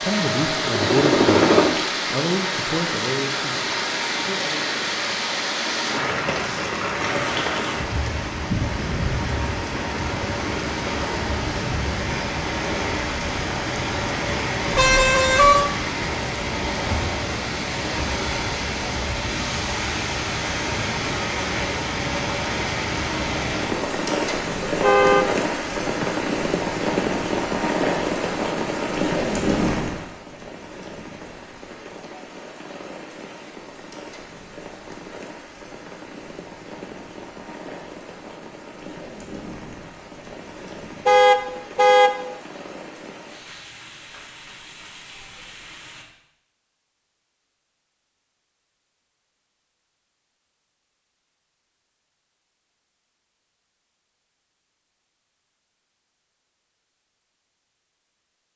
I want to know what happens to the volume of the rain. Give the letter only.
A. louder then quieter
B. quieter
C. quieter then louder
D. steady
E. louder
B.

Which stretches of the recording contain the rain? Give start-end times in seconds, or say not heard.
0.0-46.0.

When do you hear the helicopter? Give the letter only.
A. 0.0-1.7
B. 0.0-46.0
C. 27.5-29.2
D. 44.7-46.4
A.